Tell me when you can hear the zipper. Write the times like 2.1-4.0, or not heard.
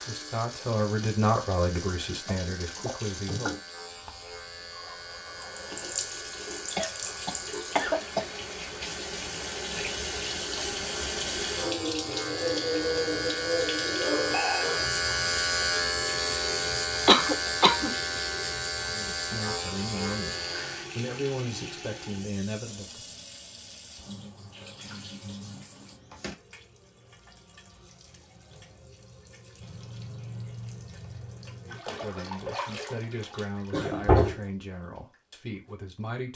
not heard.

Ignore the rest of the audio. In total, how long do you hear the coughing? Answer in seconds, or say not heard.
3 s.